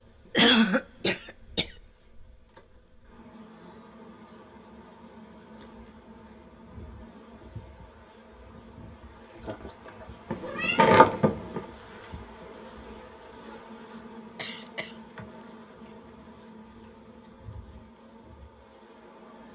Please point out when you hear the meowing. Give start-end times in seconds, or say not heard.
10.3-11.6.